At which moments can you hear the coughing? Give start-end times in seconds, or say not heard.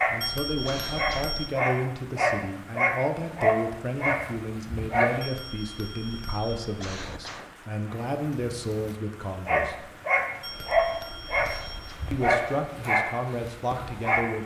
0.7-1.4, 6.8-7.6, 11.4-12.2.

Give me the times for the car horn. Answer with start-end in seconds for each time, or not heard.
not heard.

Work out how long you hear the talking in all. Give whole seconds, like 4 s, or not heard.
12 s.